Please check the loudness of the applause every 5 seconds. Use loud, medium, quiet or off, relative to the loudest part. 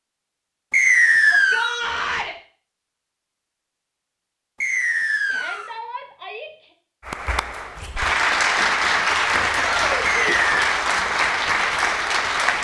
off, loud, loud.